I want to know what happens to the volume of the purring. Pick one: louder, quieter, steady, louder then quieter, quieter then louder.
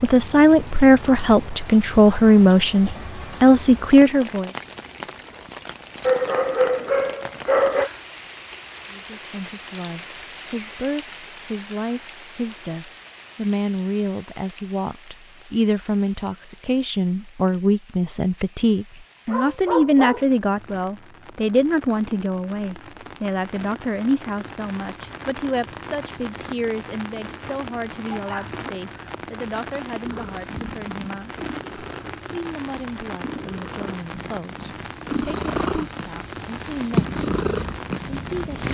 louder.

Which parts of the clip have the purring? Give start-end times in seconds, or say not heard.
30.0-38.6.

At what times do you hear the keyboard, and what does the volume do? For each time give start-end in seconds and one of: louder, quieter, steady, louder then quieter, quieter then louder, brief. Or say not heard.
not heard.